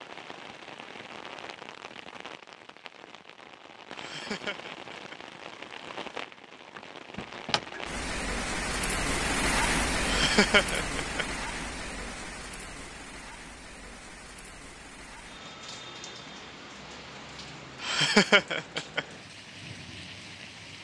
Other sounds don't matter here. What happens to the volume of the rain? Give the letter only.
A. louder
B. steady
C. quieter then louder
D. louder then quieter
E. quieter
D.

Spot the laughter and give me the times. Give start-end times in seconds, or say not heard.
4.0-5.2, 10.0-11.2, 17.8-19.1.